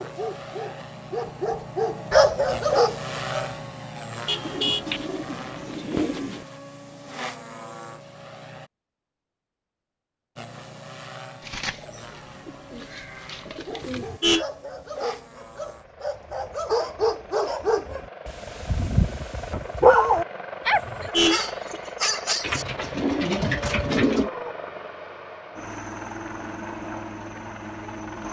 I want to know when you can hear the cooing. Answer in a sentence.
The cooing can be heard from 4.4 to 6.5 s, from 11.4 to 14.1 s and from 22.4 to 24.3 s.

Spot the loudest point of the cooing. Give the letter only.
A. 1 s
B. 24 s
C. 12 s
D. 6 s
B.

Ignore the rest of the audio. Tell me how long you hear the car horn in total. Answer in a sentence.
You can hear the car horn for 2 seconds altogether.